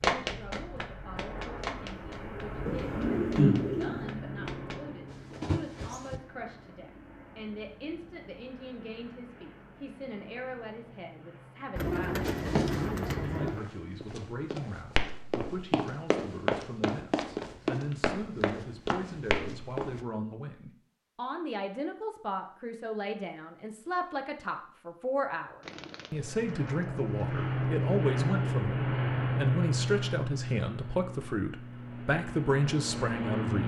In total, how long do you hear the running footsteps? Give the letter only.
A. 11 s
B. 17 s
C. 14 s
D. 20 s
C.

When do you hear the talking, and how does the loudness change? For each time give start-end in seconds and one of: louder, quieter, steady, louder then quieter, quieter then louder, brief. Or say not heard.
0.2-33.6 louder.